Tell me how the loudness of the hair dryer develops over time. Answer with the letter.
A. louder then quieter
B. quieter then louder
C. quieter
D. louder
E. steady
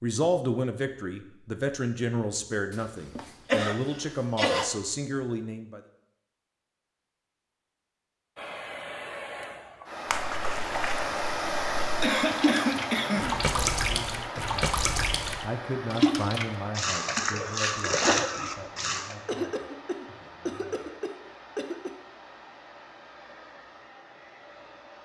C.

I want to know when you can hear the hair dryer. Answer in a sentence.
You can hear the hair dryer from 8.3 to 25.0 s.